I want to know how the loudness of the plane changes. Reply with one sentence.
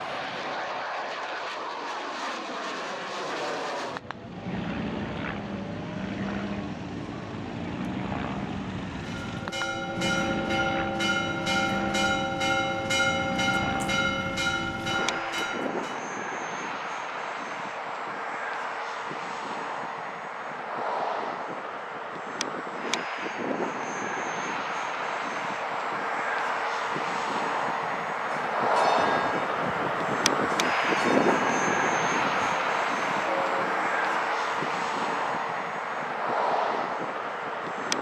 The loudness of the plane goes up.